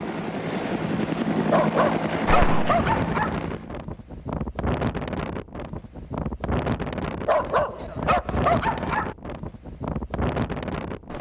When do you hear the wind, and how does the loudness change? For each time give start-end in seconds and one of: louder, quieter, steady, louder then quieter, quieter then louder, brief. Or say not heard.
2.6-11.1 steady.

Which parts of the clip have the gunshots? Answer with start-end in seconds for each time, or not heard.
2.2-3.0.